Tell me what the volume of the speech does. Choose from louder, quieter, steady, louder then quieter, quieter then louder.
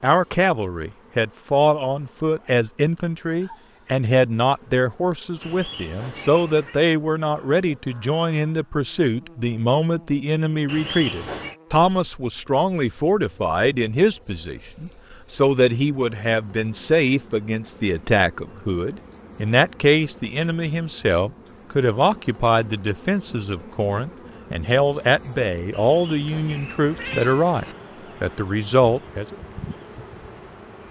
steady.